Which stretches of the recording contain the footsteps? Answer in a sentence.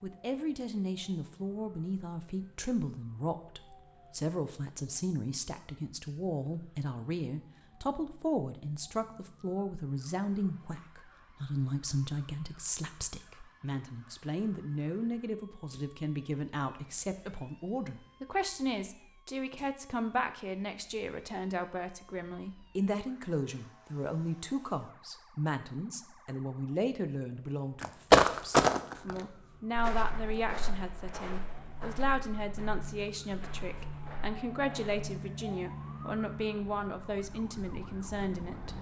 The footsteps can be heard from 27.8 to 35.1 s.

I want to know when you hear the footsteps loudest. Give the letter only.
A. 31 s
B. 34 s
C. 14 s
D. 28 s
D.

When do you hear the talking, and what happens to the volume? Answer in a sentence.
The talking can be heard from 0.0 to 38.7 s, at a steady volume.